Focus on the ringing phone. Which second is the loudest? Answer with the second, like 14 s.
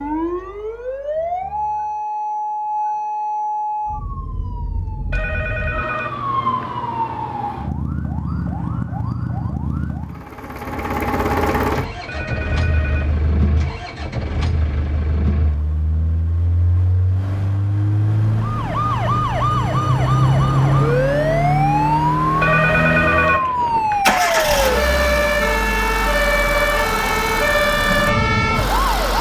23 s.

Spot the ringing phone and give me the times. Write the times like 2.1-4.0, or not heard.
5.1-6.7, 12.1-13.2, 22.4-24.1.